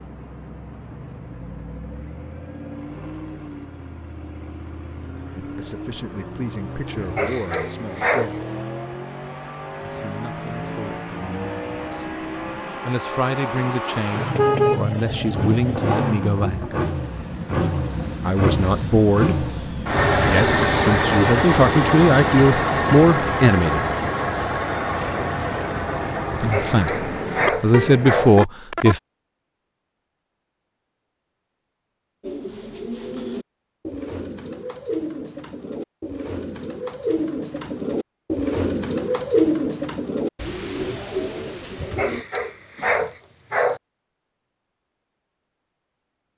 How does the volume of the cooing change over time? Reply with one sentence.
The volume of the cooing goes up, then down.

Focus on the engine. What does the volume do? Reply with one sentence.
The volume of the engine goes up.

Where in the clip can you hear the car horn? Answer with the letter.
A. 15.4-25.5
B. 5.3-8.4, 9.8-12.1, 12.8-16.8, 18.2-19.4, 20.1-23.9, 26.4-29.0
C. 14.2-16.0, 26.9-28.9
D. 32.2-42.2
C.